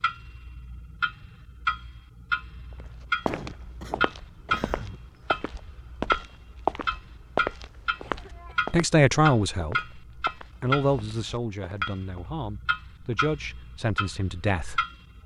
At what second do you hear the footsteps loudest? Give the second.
7 s.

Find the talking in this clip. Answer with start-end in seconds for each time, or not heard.
8.7-14.8.